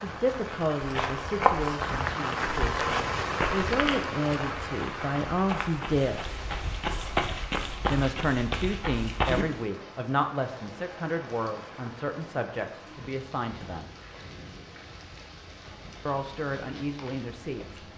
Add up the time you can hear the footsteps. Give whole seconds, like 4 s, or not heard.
9 s.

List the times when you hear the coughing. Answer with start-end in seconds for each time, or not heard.
not heard.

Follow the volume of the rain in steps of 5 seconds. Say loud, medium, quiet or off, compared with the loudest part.
loud, medium, quiet, quiet.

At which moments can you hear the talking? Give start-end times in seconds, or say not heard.
0.0-6.2, 7.9-13.9, 16.1-17.8.